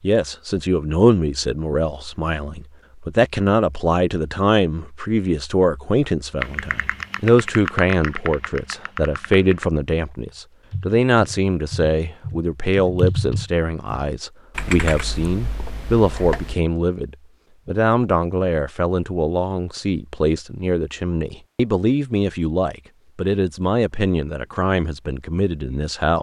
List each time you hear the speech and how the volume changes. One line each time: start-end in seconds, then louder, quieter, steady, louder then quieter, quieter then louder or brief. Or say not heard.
0.0-26.1 steady.